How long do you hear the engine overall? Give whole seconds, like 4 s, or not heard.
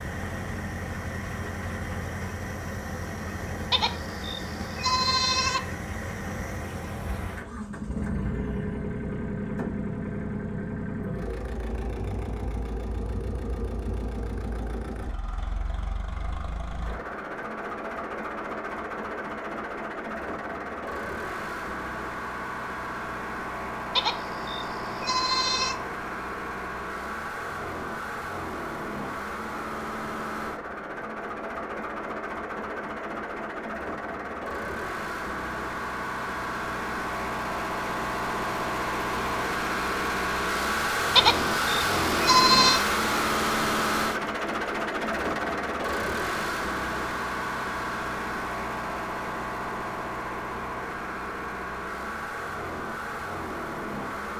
54 s.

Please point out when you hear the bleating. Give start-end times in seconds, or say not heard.
3.7-5.6, 23.9-25.8, 41.1-42.9.